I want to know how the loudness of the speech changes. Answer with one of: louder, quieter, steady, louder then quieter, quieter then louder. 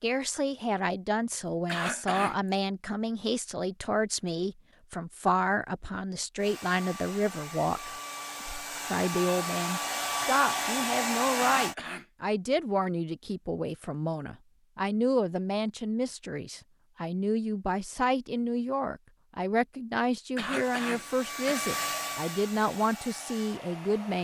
steady.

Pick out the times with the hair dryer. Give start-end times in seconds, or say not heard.
6.3-11.8, 20.6-24.1.